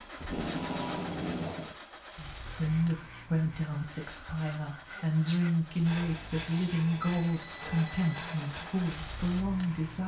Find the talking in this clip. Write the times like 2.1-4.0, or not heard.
2.1-10.0.